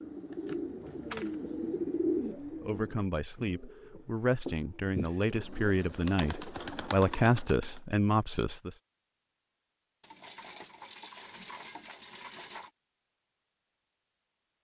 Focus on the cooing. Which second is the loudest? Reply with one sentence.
The loudest moment of the cooing is at 2 seconds.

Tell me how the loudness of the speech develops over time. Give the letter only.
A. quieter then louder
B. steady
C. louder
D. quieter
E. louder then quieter
C.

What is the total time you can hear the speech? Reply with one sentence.
You can hear the speech for 6 seconds altogether.